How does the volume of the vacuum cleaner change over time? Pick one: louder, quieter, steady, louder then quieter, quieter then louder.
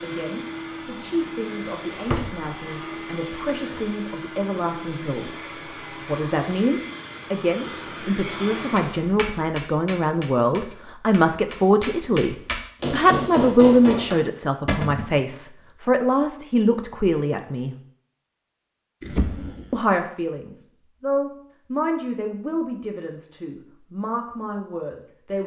steady.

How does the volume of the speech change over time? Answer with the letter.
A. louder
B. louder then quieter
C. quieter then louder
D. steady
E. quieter
B.